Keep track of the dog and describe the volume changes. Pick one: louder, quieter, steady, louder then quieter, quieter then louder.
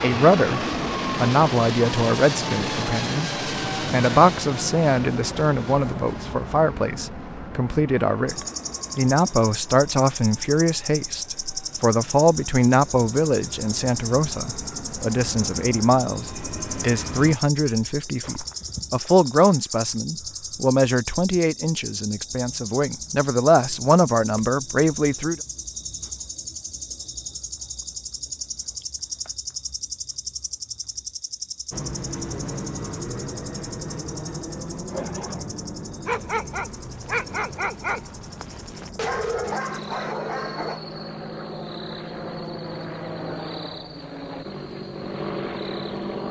steady.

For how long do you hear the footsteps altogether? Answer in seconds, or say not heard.
not heard.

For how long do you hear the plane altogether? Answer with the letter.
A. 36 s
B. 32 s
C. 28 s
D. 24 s
B.